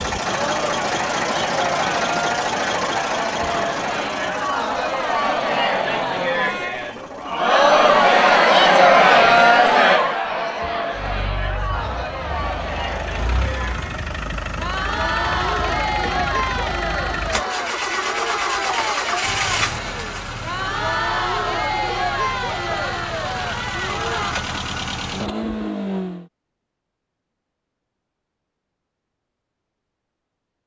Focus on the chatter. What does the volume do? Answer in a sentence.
The loudness of the chatter goes up, then down.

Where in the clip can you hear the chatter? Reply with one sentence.
You can hear the chatter from 0.1 to 24.4 s.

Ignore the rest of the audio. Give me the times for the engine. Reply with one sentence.
You can hear the engine from 0.0 to 7.5 s and from 10.9 to 26.3 s.